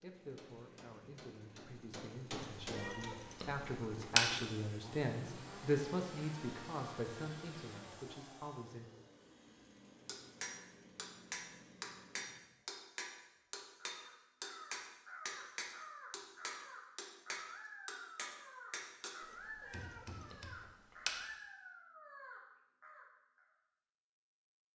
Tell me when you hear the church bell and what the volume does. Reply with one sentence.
You can't hear the church bell here.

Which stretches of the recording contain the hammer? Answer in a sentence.
You can hear the hammer from 0.0 to 3.1 s and from 10.1 to 20.5 s.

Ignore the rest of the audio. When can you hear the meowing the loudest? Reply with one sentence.
The loudest moment of the meowing is at 4 seconds.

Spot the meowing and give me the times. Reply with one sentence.
The meowing can be heard from 2.4 to 4.2 s and from 19.2 to 21.2 s.